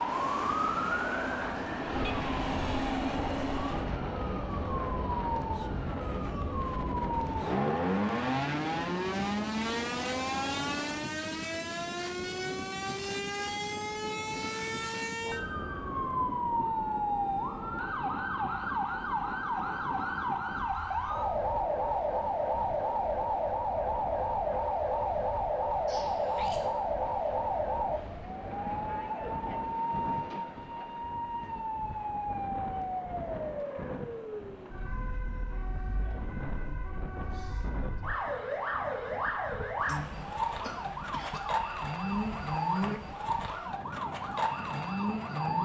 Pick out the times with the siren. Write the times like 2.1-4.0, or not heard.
0.0-45.6.